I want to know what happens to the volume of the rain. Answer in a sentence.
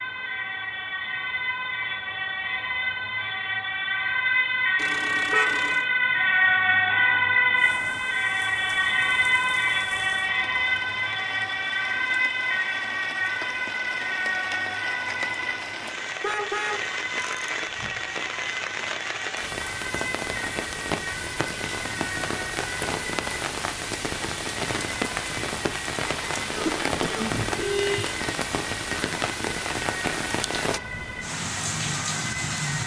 The loudness of the rain goes up.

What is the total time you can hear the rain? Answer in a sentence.
You can hear the rain for 25 seconds altogether.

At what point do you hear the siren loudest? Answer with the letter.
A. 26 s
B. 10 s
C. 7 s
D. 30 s
C.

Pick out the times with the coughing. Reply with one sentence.
The coughing can be heard from 26.5 to 27.4 s.